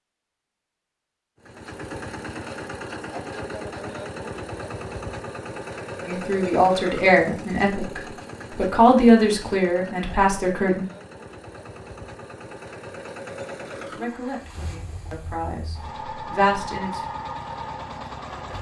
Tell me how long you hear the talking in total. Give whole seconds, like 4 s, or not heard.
8 s.